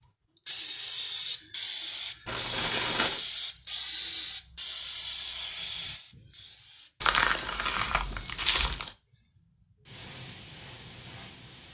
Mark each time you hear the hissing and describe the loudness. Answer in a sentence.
The hissing can be heard from 0.0 to 11.6 s, getting quieter.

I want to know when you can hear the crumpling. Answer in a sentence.
You can hear the crumpling from 2.2 to 3.2 s and from 7.0 to 8.9 s.